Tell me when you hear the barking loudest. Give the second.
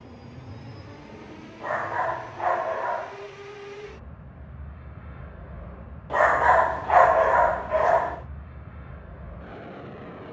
7 s.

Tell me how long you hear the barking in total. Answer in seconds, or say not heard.
4 s.